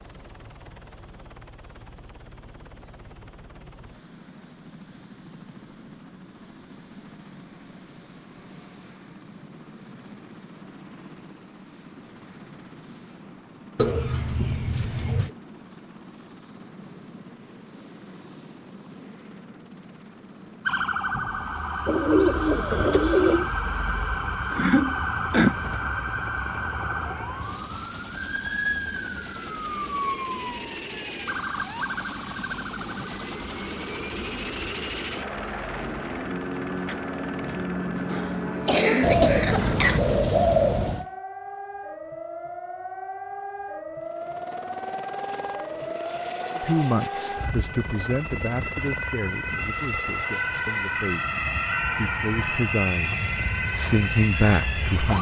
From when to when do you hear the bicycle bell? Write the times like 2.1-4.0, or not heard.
not heard.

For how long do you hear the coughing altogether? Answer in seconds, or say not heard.
3 s.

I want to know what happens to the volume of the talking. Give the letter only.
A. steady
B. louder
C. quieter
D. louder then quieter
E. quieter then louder
E.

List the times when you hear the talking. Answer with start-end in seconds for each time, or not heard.
46.5-55.1.